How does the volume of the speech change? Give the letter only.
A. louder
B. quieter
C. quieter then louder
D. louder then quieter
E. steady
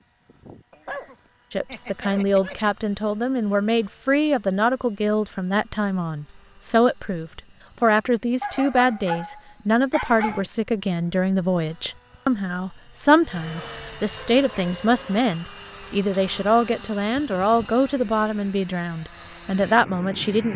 E.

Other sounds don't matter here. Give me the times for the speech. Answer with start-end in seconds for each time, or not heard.
1.5-20.5.